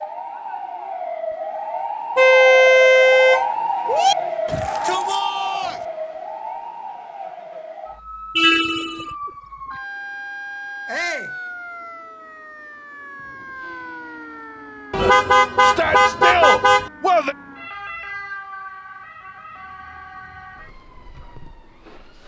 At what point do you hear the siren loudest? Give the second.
4 s.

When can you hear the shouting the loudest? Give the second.
16 s.